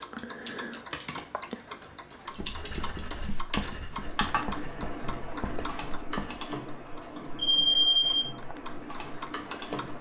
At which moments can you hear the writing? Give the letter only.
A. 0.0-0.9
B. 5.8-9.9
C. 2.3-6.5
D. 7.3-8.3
C.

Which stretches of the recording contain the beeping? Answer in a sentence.
You can hear the beeping from 7.3 to 8.3 s.